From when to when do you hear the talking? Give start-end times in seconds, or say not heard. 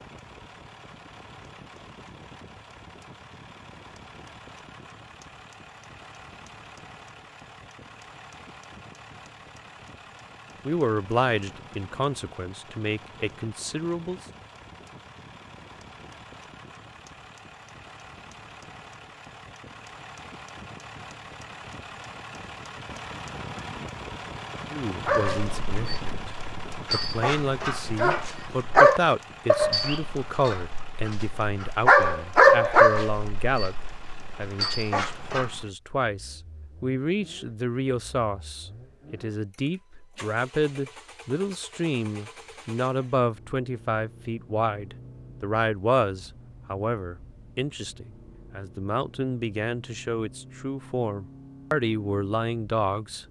10.7-14.2, 24.7-26.3, 26.9-53.2.